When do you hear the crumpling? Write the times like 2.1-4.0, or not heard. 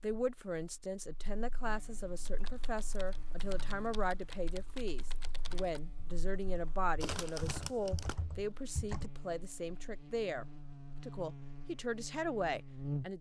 7.0-8.2.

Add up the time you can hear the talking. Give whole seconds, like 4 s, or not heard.
13 s.